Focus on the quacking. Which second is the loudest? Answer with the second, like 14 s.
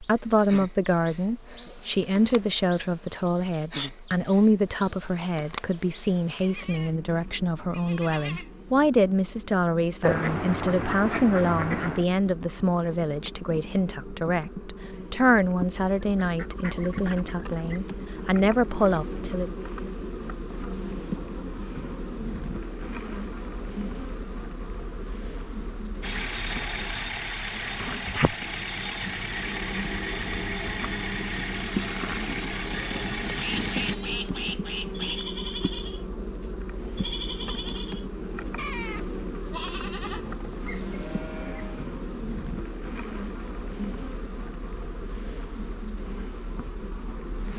10 s.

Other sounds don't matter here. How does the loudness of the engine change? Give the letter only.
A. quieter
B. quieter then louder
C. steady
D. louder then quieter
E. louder
C.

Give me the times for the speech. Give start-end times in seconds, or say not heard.
0.0-19.6.